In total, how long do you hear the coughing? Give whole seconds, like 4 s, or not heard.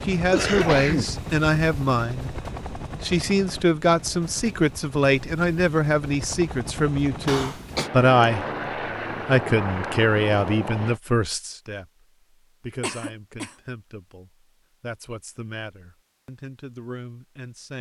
2 s.